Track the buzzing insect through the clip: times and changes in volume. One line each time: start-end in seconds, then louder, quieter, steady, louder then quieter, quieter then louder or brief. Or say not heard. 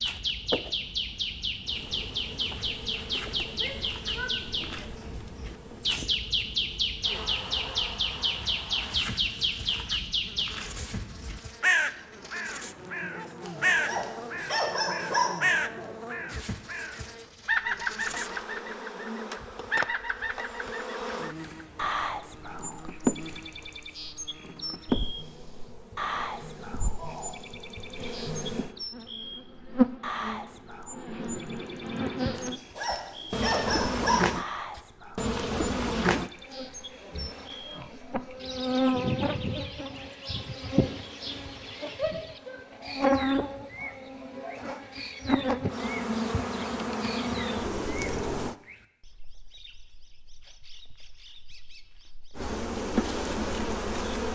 0.5-48.5 louder
52.4-54.3 brief.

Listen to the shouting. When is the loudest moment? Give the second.
42 s.